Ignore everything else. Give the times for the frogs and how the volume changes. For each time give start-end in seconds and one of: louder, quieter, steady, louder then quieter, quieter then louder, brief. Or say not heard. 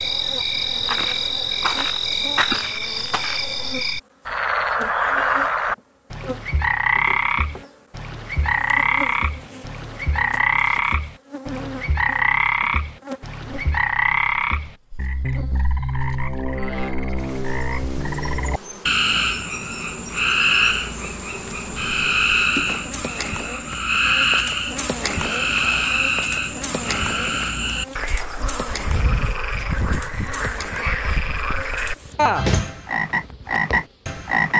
0.0-34.5 steady.